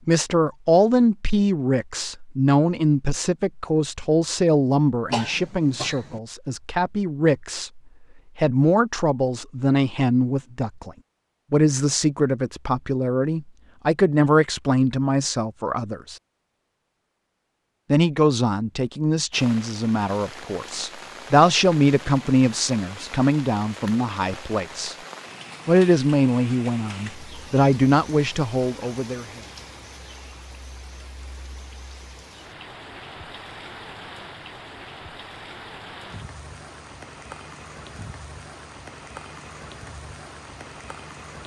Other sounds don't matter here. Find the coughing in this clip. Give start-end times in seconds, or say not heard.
5.1-6.2.